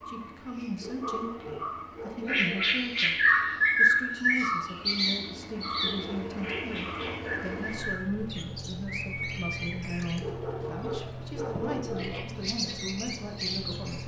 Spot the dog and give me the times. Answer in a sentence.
The dog can be heard from 0.8 to 2.8 s, from 5.8 to 7.8 s and from 10.2 to 12.2 s.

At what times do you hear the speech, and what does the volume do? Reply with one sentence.
You can hear the speech from 0.1 to 14.0 s, at a steady volume.